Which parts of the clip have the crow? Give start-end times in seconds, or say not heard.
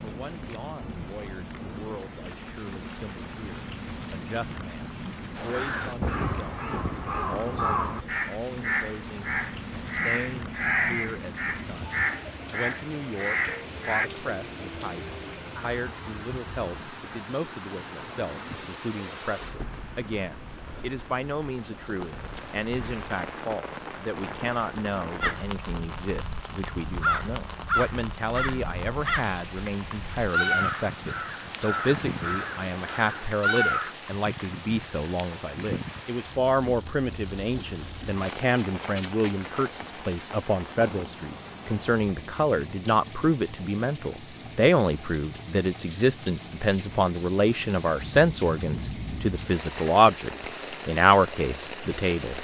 5.3-14.1, 25.2-34.0.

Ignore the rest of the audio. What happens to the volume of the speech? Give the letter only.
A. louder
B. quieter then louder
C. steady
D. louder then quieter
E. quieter
A.